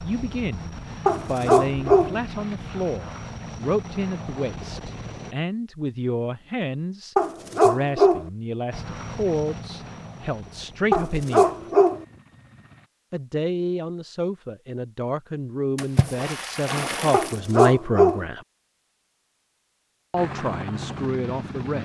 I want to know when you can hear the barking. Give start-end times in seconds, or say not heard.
1.1-2.1, 7.2-8.2, 10.9-12.1, 17.1-18.2.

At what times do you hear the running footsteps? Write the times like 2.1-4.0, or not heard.
not heard.